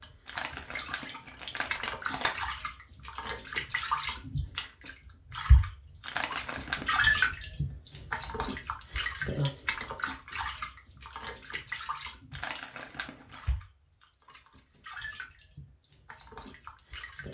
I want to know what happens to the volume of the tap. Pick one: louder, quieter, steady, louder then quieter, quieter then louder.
louder then quieter.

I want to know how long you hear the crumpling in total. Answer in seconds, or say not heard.
4 s.